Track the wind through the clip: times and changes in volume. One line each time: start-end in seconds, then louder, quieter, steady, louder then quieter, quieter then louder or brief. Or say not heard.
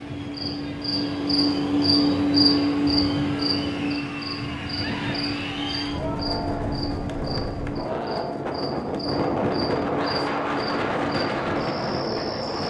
0.0-12.6 louder.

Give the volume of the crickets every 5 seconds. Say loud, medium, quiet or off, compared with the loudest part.
loud, medium, medium.